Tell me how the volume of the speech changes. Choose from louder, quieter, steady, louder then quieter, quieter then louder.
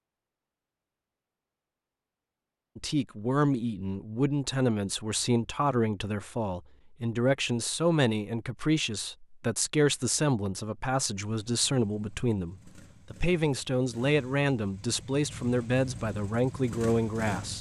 steady.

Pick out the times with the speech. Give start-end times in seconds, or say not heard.
2.8-17.5.